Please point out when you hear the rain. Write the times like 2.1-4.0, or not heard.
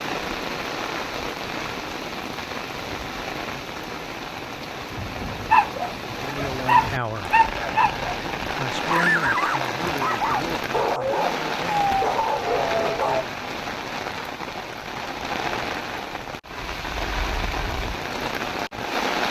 0.0-19.2.